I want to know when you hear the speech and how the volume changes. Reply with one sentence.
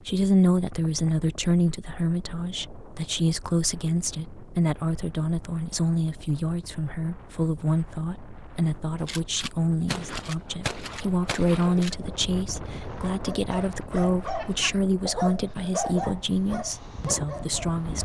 You can hear the speech from 0.1 to 17.9 s, at a steady volume.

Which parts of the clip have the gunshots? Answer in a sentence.
You can hear the gunshots from 8.9 to 12.2 s.